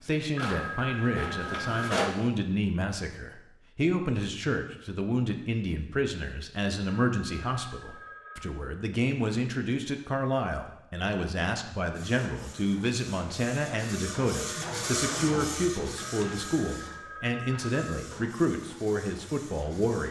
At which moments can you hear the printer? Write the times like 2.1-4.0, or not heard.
0.0-2.1, 11.9-20.0.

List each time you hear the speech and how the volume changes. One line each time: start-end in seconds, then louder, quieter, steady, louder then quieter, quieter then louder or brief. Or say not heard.
0.0-20.0 steady.